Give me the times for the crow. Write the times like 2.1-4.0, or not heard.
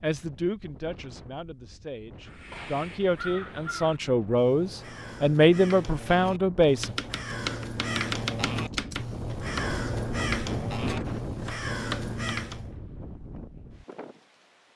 2.2-12.8.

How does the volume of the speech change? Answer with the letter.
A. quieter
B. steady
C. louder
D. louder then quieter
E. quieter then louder
C.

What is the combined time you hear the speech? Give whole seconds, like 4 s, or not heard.
7 s.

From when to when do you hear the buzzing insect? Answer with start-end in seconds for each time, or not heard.
not heard.